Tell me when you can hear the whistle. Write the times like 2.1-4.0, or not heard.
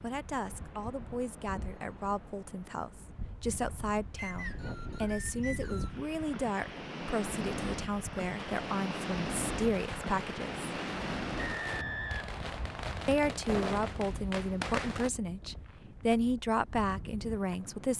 4.2-6.0, 11.4-12.9.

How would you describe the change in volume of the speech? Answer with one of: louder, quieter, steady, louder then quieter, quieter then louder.
louder.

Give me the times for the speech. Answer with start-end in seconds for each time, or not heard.
0.0-10.7, 13.1-17.9.